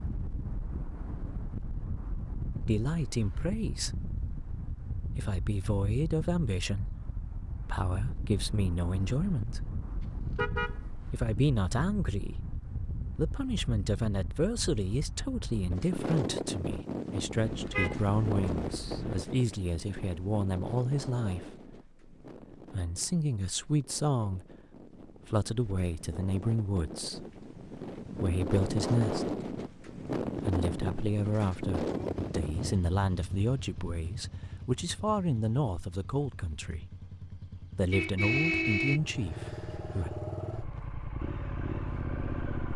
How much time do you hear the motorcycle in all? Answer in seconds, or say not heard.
11 s.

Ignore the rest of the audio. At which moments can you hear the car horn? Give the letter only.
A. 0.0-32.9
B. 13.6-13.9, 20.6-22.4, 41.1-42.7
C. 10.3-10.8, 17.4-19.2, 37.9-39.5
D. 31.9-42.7
C.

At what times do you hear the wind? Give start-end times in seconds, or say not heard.
0.0-32.9.